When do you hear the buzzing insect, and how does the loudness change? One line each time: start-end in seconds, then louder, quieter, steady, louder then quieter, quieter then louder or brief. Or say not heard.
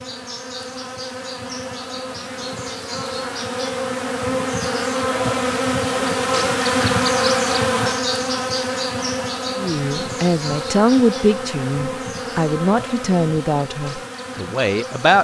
0.0-15.1 louder then quieter.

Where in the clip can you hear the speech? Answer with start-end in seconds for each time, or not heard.
9.6-15.1.